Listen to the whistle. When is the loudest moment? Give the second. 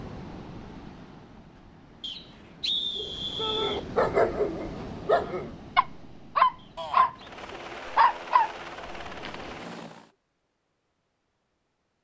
3 s.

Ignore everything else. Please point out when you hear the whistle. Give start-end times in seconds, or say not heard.
2.0-3.9, 6.5-7.3.